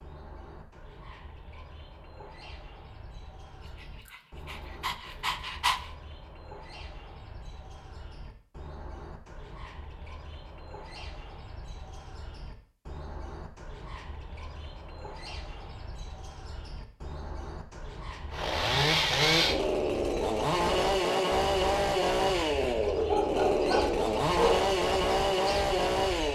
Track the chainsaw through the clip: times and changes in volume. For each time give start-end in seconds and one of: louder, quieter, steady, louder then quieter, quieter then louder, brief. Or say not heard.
18.3-26.3 steady.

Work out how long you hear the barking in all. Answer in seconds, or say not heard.
4 s.